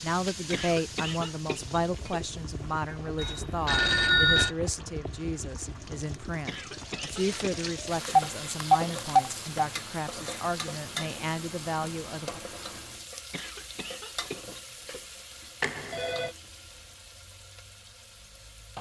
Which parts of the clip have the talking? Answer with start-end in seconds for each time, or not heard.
0.0-12.4.